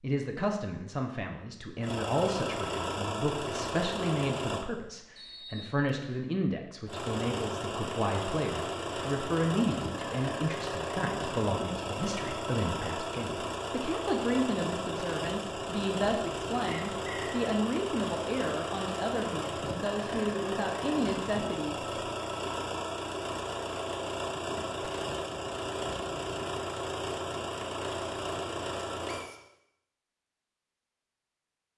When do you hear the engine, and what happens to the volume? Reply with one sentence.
You can hear the engine briefly from 1.8 to 4.7 s; and from 6.8 to 29.2 s, at a steady volume.